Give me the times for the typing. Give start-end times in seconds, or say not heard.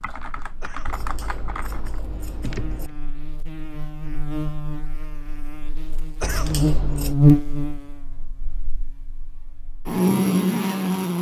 0.0-3.0.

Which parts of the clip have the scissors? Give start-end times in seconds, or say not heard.
0.8-2.9, 6.2-7.2.